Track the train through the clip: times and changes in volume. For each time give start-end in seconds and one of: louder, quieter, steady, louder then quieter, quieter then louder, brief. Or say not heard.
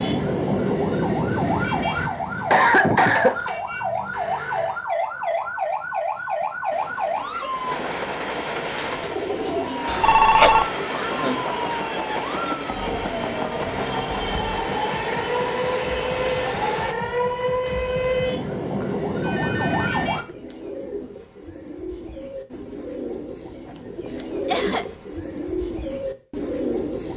6.7-16.9 steady.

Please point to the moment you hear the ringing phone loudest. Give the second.
10 s.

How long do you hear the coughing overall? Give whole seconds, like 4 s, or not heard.
3 s.